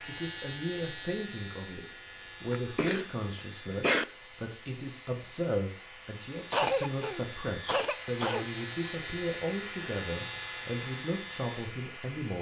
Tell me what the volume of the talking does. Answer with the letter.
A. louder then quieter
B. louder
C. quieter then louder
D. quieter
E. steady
E.